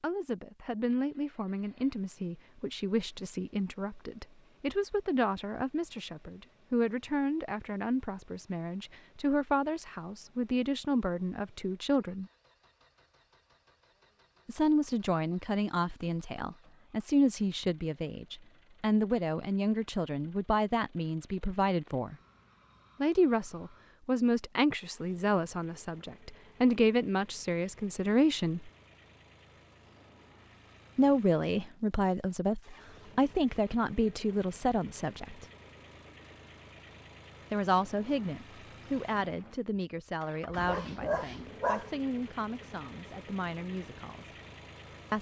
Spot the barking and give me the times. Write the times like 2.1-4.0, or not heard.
40.5-41.9.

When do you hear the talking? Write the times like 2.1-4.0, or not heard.
0.0-12.2, 14.4-22.1, 23.0-28.7, 30.9-35.5, 37.5-44.3.